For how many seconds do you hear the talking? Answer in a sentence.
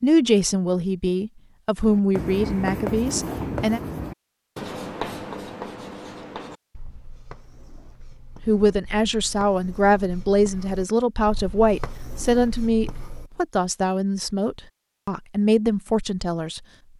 The talking can be heard for 12 seconds in total.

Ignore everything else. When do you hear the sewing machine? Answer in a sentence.
You can't hear the sewing machine here.